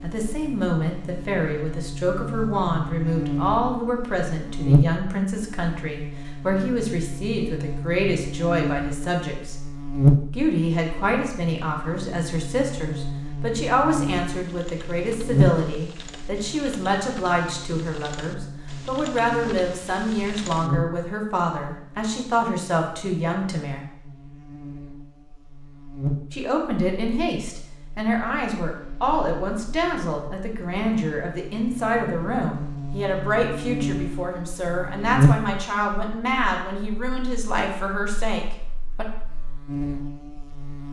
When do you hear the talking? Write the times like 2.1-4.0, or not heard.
0.0-9.6, 10.3-23.9, 26.3-39.0.